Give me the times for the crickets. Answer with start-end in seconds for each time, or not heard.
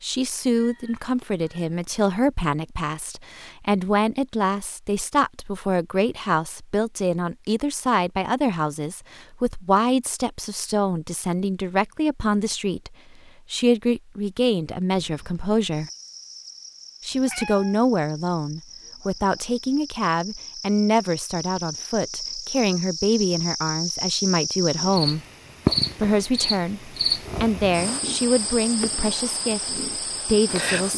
14.9-30.9.